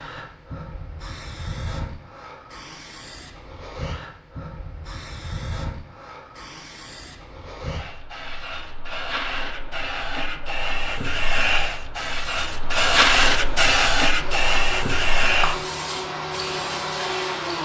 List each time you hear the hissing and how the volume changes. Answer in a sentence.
You can hear the hissing from 0.0 to 17.5 s, getting louder.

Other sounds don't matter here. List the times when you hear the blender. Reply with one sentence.
You can hear the blender from 14.2 to 17.5 s.